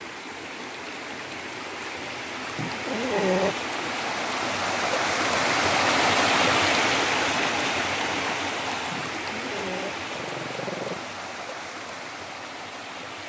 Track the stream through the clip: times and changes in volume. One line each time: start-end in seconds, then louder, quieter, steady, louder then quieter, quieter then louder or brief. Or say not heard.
0.0-13.2 louder then quieter.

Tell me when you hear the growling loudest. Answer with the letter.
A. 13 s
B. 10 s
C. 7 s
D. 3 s
D.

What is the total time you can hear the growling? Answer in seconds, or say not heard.
3 s.